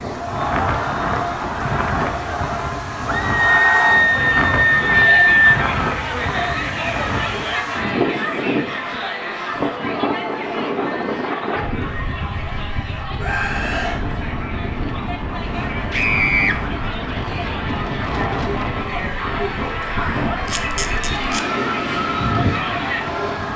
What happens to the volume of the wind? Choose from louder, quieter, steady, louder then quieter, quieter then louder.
steady.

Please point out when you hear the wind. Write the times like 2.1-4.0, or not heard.
0.0-23.5.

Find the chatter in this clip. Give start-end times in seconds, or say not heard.
0.0-23.5.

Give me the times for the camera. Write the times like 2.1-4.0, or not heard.
20.4-21.4.